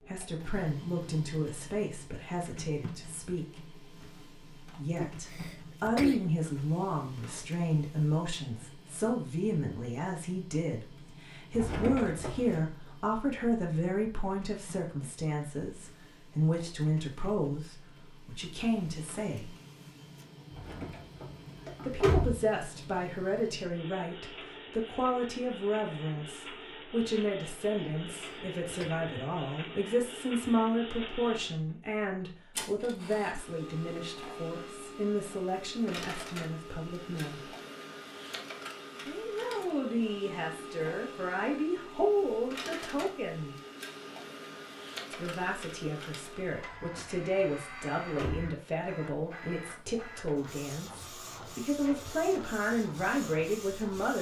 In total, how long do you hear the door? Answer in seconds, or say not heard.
5 s.